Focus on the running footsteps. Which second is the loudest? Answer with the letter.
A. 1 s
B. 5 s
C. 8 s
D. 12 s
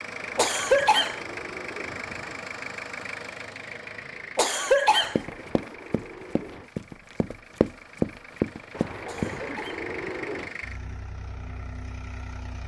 C.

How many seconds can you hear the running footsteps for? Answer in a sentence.
You can hear the running footsteps for 4 seconds altogether.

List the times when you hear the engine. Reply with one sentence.
You can hear the engine from 0.0 to 12.6 s.